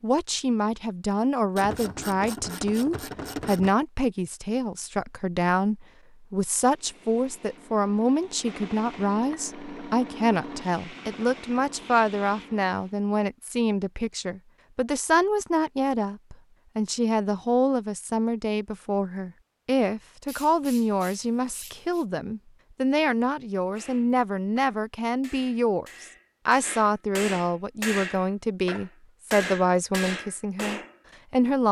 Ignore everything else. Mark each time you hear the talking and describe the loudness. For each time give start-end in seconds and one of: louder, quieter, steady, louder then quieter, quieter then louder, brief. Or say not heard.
0.0-31.6 steady.